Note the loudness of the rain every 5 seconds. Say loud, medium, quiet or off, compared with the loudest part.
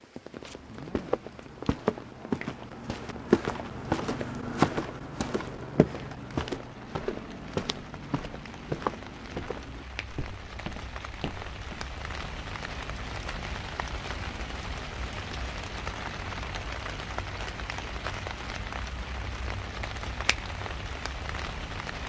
medium, medium, loud, loud, loud.